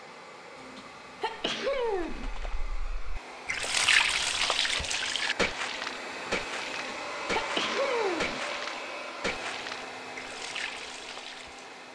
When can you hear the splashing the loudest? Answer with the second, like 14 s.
4 s.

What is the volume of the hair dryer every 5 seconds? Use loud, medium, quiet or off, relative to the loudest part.
medium, loud, medium.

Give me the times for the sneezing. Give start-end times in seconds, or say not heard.
0.6-2.3, 6.7-8.4.